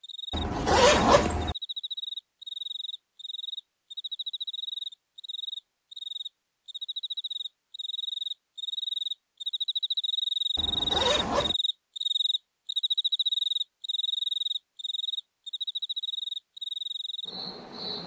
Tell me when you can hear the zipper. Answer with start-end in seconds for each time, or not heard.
0.3-1.6, 10.6-11.6.